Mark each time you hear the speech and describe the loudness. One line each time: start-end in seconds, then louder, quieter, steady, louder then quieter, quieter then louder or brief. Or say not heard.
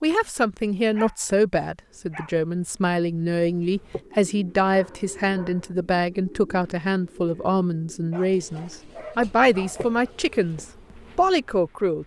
0.0-12.0 steady.